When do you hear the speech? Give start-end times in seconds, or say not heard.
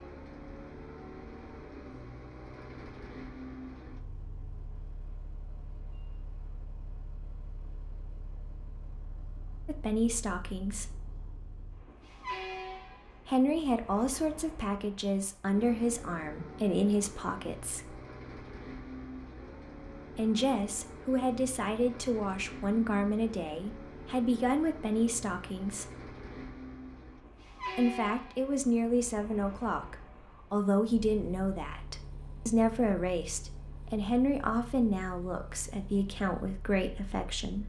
9.7-10.8, 13.2-17.9, 20.1-25.9, 27.8-37.6.